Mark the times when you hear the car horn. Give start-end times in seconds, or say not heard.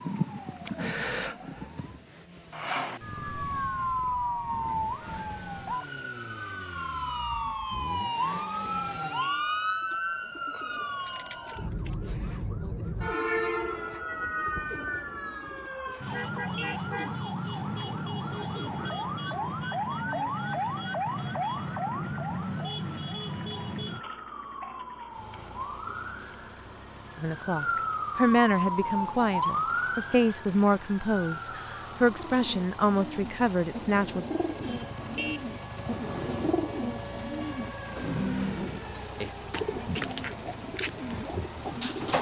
8.6-9.6, 15.9-16.9, 34.5-36.5.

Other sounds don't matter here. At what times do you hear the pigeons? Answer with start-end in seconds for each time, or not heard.
9.4-20.3, 32.2-42.1.